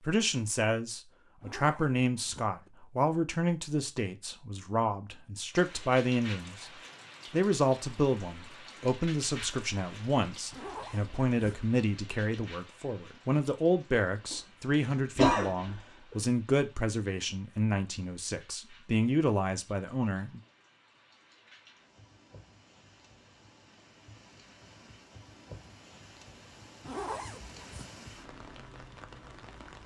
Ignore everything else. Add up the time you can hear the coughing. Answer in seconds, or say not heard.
2 s.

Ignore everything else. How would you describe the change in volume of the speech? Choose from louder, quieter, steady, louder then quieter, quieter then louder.
steady.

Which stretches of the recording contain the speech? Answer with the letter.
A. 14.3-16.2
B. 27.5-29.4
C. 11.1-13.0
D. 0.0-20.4
D.